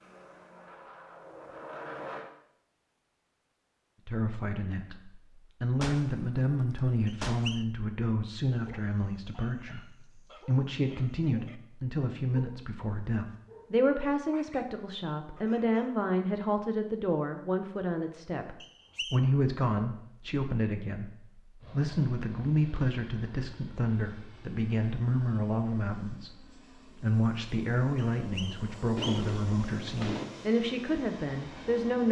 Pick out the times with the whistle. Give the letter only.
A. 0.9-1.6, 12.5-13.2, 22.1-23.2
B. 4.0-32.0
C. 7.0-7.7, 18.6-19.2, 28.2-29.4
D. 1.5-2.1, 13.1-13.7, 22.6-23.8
C.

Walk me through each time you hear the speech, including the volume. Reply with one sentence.
The speech can be heard from 4.0 to 32.0 s, at a steady volume.